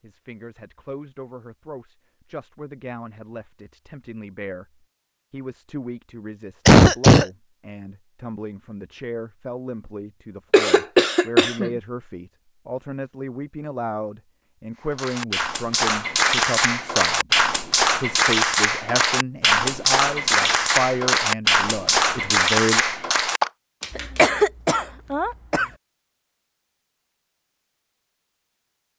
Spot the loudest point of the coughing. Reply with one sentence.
The loudest moment of the coughing is at 7 seconds.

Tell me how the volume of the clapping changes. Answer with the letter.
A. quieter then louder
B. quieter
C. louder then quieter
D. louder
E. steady
E.